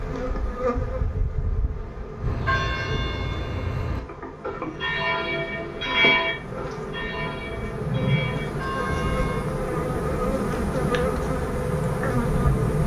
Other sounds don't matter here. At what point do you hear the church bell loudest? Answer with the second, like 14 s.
6 s.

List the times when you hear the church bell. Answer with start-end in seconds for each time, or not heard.
2.2-9.4.